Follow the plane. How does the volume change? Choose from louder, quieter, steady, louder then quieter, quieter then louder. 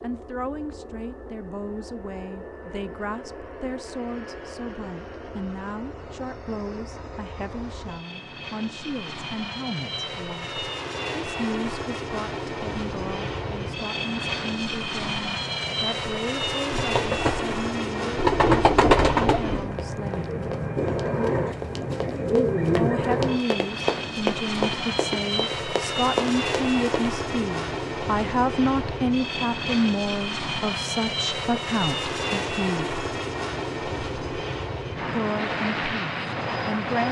louder.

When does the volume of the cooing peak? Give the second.
19 s.